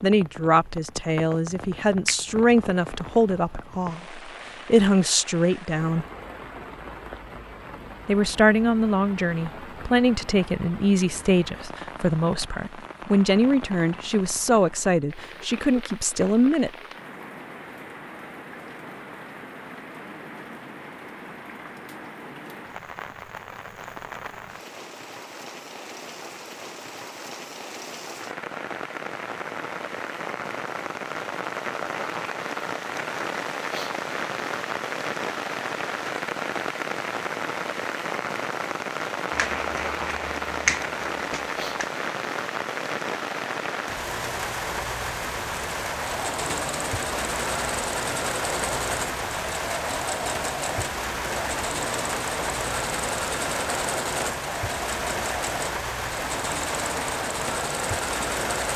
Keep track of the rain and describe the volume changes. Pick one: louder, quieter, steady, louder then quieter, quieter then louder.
louder.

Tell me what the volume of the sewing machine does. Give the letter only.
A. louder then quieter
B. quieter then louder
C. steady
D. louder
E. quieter
C.